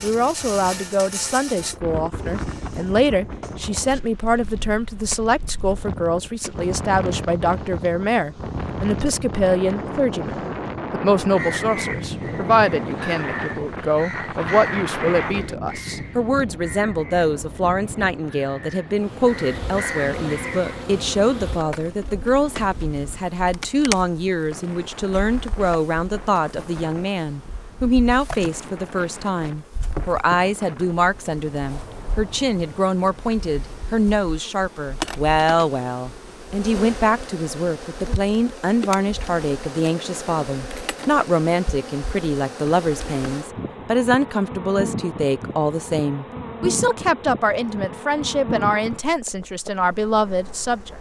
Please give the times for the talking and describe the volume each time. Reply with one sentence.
The talking can be heard from 0.0 to 50.9 s, at a steady volume.